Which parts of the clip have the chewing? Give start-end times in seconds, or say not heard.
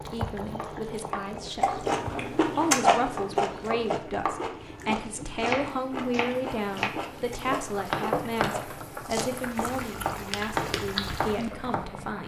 1.6-11.7.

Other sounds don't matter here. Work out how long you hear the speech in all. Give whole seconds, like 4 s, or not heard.
12 s.